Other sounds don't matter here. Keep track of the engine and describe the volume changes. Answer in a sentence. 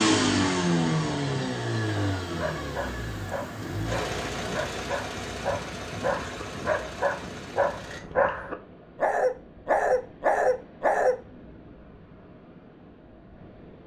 The volume of the engine goes down.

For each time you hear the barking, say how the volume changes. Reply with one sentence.
You can hear the barking from 2.2 to 11.2 s, getting louder.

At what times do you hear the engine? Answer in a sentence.
You can hear the engine from 0.0 to 8.0 s.